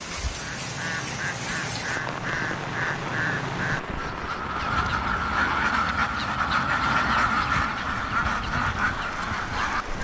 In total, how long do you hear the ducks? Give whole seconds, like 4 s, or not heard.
10 s.